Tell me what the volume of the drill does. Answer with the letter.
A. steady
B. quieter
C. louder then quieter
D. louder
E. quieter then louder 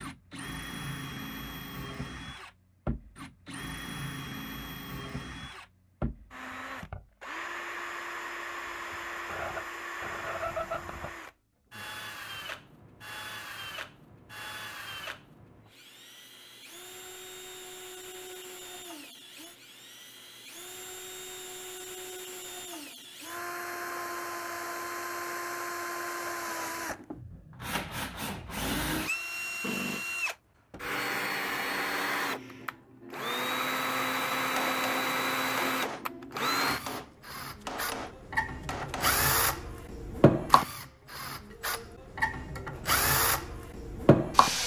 D.